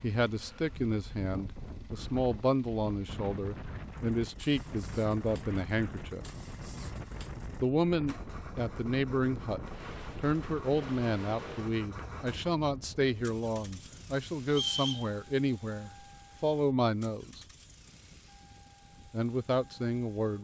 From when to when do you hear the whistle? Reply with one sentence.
You can hear the whistle from 14.4 to 15.1 s.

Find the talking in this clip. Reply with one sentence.
The talking can be heard from 0.0 to 6.2 s, from 7.6 to 17.4 s and from 19.1 to 20.3 s.